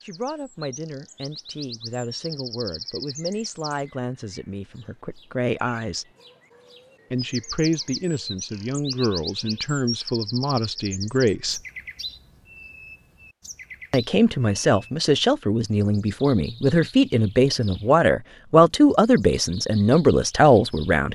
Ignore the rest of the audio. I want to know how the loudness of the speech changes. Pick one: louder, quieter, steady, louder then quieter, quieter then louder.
louder.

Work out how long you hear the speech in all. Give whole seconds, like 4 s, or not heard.
18 s.